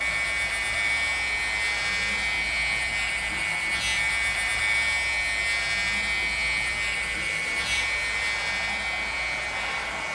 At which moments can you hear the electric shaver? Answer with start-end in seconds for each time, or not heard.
0.0-10.1.